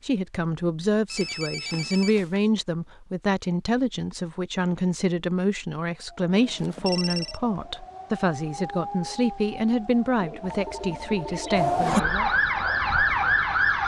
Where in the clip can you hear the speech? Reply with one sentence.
You can hear the speech from 0.0 to 12.3 s.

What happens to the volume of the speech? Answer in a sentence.
The volume of the speech stays about the same.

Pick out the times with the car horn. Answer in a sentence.
The car horn can't be heard in this clip.